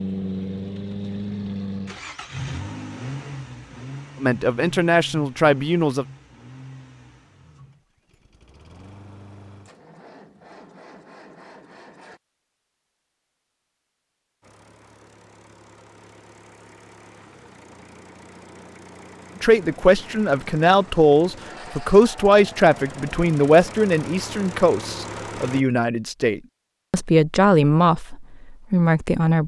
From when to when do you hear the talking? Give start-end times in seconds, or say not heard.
4.2-6.0, 19.4-29.4.